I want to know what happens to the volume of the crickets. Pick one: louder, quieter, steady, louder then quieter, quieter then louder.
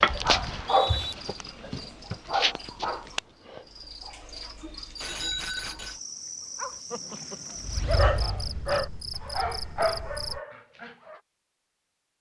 louder.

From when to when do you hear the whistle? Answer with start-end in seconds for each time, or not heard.
0.4-1.1.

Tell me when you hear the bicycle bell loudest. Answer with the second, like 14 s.
5 s.